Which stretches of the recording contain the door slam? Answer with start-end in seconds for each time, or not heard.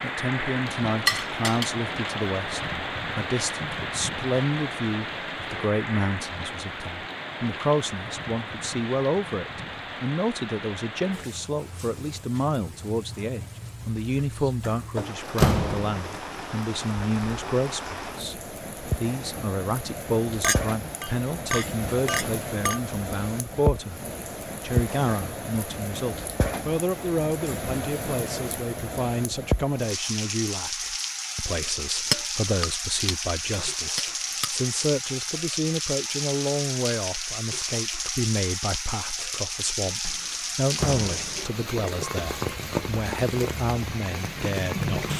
14.6-16.2, 40.0-41.5.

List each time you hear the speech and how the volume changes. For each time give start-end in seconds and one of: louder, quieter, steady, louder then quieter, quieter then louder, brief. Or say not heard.
0.0-24.0 steady
24.6-45.1 steady.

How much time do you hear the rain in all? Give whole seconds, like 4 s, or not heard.
45 s.